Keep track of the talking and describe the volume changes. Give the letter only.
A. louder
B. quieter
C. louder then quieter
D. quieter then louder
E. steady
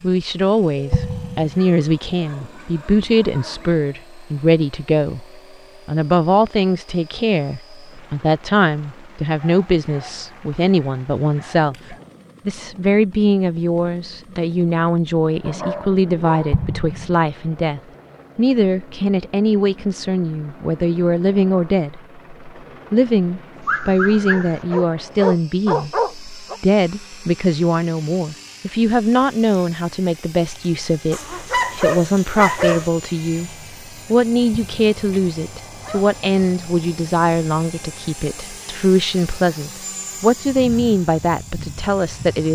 E.